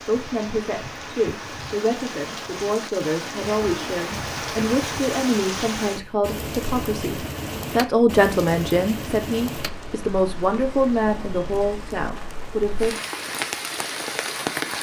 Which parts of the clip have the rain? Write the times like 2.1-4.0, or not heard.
0.0-14.7.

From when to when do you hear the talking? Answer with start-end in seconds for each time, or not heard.
0.1-12.9.